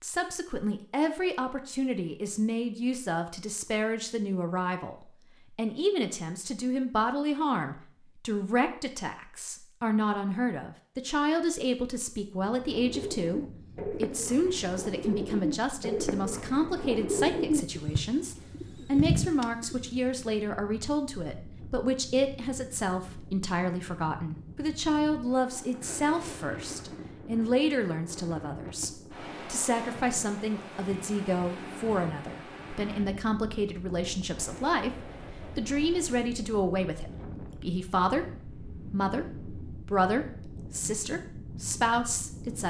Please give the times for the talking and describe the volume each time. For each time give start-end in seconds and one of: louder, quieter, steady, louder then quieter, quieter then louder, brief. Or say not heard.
0.0-42.6 steady.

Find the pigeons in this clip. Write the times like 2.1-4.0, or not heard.
12.7-20.1.